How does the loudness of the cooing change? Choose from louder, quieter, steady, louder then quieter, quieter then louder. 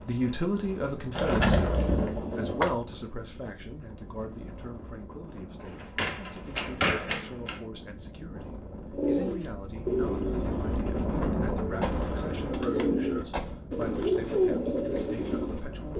quieter then louder.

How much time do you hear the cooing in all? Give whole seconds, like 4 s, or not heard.
7 s.